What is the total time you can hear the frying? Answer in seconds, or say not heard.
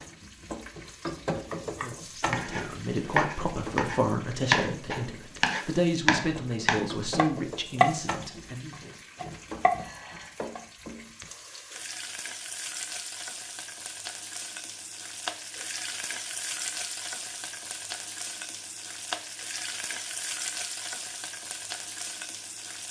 23 s.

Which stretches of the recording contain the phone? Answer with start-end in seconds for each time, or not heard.
9.8-10.3.